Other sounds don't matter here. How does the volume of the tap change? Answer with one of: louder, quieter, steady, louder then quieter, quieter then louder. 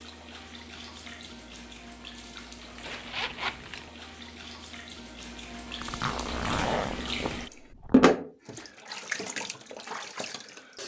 louder then quieter.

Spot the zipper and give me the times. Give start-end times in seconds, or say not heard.
2.8-3.9, 5.8-8.2.